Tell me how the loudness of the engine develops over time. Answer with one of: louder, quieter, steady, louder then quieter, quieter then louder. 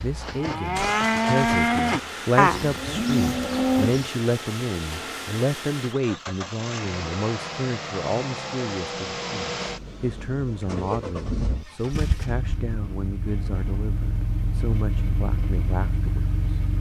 steady.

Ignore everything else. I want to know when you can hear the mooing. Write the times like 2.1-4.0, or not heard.
0.0-4.1.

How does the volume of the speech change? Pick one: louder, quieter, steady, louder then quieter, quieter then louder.
quieter.